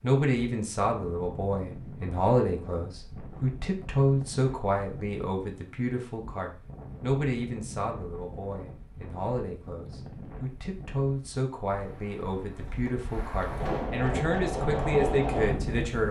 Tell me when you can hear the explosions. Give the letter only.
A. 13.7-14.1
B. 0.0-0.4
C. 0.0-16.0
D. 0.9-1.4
A.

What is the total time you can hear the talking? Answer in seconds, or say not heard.
16 s.